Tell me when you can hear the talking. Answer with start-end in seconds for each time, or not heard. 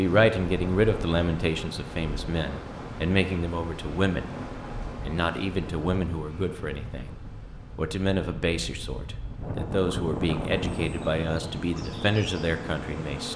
0.0-4.3, 5.0-13.3.